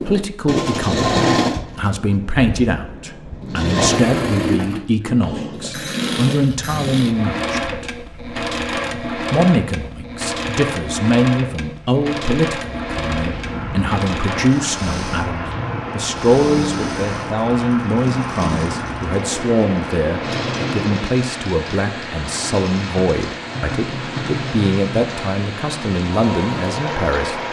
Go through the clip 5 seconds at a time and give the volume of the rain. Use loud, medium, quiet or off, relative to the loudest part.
off, off, loud, loud, loud, loud.